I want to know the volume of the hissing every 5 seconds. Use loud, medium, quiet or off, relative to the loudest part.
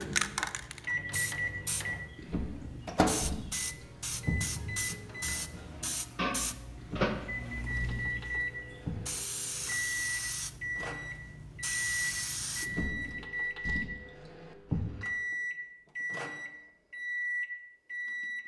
loud, loud, loud, off.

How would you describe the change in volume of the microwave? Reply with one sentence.
The loudness of the microwave stays about the same.